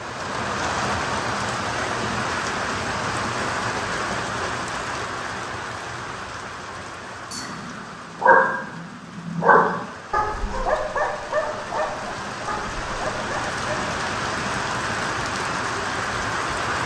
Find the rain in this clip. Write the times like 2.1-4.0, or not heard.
0.0-16.8.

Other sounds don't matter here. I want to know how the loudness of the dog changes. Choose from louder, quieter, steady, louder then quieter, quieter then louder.
quieter.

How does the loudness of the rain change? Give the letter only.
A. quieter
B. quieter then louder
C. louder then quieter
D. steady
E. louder
B.